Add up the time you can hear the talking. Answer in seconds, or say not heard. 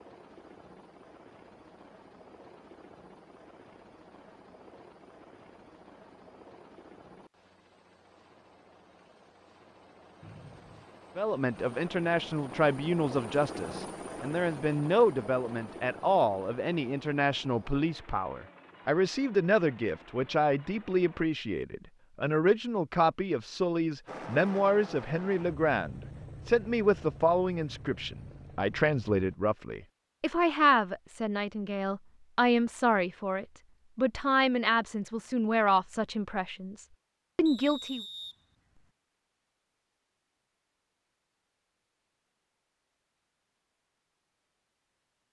27 s.